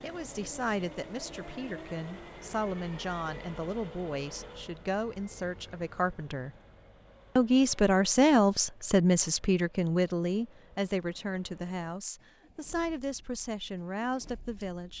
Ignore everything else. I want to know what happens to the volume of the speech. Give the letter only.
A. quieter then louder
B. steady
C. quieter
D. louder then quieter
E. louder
D.